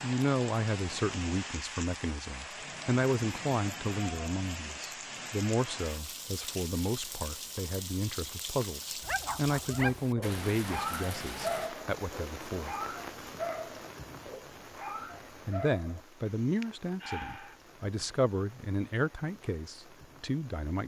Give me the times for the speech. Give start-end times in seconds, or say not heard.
0.0-12.8, 15.4-20.8.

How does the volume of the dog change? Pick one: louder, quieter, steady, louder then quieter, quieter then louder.
quieter.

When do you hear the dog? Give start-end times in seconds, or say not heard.
9.0-17.6.